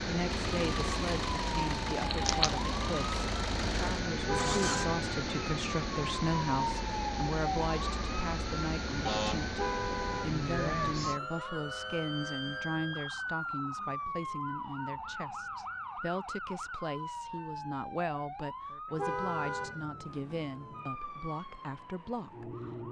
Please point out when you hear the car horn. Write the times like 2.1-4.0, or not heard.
4.2-5.0, 9.6-10.4, 18.9-19.8.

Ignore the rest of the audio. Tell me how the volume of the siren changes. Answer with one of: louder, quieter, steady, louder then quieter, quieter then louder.
quieter.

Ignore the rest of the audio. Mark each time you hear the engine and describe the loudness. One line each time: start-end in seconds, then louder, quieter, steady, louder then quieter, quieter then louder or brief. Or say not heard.
0.1-4.8 steady.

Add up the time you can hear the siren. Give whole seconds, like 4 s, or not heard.
23 s.